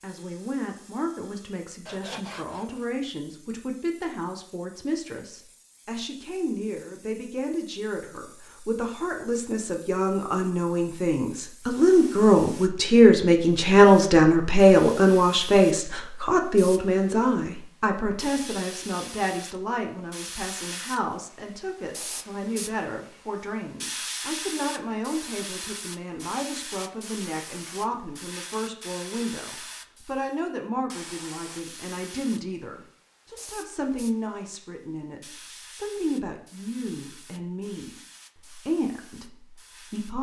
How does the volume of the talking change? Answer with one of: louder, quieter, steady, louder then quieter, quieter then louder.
louder then quieter.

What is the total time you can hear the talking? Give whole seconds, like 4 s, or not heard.
40 s.